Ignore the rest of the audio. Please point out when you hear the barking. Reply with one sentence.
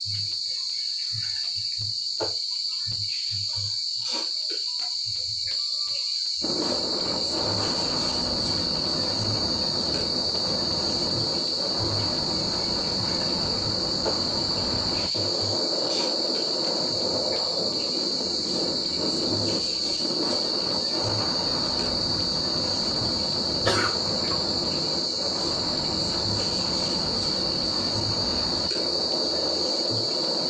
The barking can't be heard in this clip.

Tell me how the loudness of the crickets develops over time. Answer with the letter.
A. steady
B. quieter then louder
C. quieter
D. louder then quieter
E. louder
A.